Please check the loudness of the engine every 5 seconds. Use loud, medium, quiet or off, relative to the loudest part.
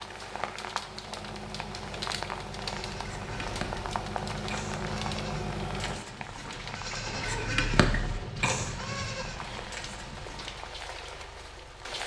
loud, loud, quiet.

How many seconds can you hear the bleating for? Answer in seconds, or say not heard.
8 s.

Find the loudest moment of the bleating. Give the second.
8 s.